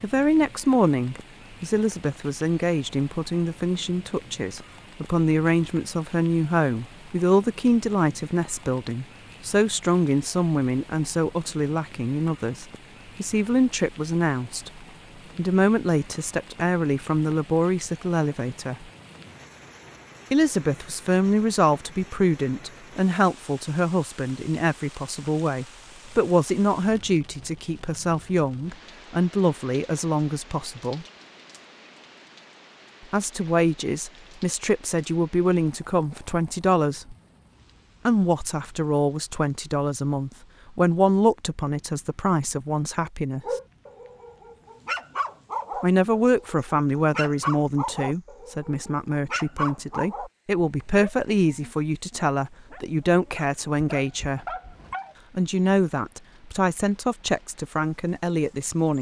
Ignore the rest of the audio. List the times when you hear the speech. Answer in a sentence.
You can hear the speech from 0.0 to 18.9 s, from 20.3 to 31.1 s, from 33.1 to 37.1 s, from 38.0 to 43.4 s, from 45.8 to 54.5 s and from 55.4 to 58.9 s.